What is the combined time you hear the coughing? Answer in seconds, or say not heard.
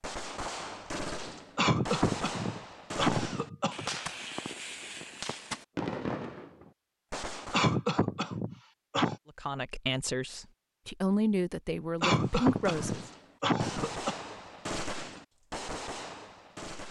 6 s.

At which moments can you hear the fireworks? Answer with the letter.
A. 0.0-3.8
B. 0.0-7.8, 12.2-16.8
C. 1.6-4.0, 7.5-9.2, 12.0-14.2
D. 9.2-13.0
B.